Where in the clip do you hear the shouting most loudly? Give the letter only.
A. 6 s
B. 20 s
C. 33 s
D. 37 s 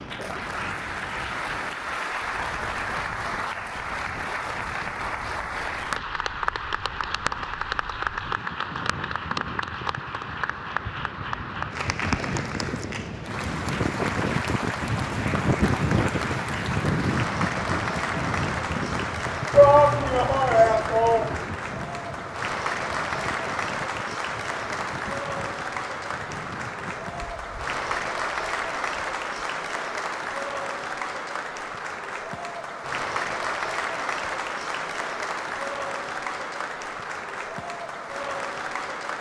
B.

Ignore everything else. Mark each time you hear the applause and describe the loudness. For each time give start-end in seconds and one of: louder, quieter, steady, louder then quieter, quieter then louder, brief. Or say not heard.
0.0-39.1 steady.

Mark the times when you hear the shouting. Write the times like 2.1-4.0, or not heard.
19.5-21.4.